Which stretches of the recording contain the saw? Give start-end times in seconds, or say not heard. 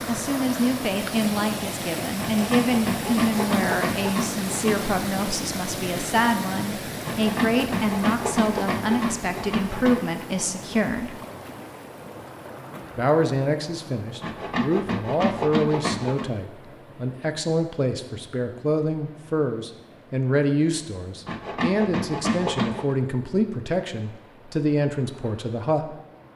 2.1-4.9, 7.0-10.0, 14.2-16.3, 21.2-22.9.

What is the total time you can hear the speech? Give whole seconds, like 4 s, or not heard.
24 s.